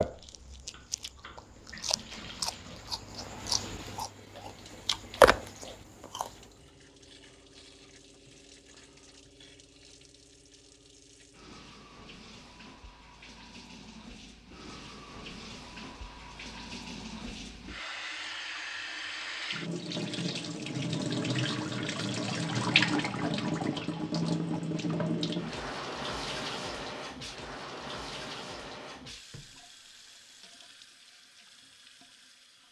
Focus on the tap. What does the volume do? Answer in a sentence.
The volume of the tap goes up, then down.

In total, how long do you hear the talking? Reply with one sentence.
You can't hear the talking here.